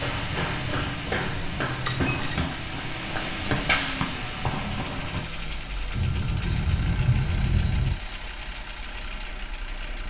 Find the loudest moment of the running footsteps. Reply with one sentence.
The loudest moment of the running footsteps is at 4 seconds.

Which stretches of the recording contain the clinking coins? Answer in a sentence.
The clinking coins can be heard from 1.7 to 2.5 s.